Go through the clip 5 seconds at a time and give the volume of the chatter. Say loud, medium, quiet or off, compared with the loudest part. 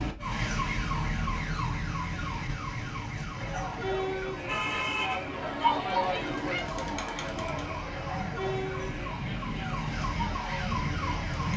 loud, loud, medium.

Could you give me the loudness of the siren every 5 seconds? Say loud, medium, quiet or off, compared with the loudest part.
loud, medium, loud.